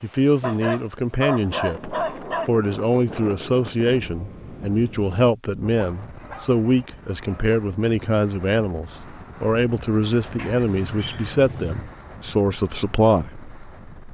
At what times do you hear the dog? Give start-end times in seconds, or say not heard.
0.4-2.5, 5.8-7.6, 10.3-11.9.